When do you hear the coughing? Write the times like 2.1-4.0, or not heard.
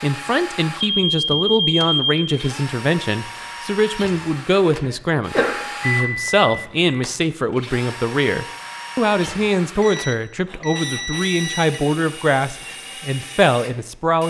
4.8-5.6.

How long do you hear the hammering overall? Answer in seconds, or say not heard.
not heard.